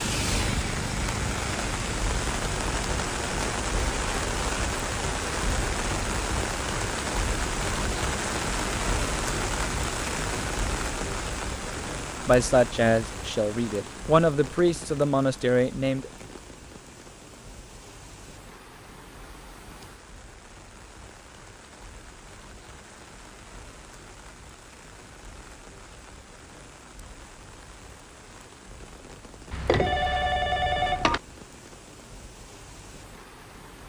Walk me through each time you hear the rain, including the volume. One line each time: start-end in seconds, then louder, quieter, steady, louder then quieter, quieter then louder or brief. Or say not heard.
0.0-33.8 quieter.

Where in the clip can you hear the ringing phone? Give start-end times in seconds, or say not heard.
29.5-31.2.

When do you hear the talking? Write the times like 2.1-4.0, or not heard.
12.2-16.1.